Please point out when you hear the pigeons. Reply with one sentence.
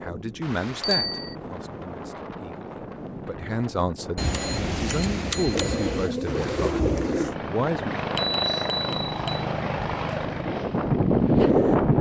The pigeons can be heard from 5.5 to 7.3 s.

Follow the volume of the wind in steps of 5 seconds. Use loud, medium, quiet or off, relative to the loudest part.
quiet, quiet, loud.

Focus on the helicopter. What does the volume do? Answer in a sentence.
The volume of the helicopter goes down.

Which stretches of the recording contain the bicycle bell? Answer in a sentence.
The bicycle bell can be heard from 0.8 to 1.4 s, from 4.2 to 6.1 s and from 8.2 to 9.4 s.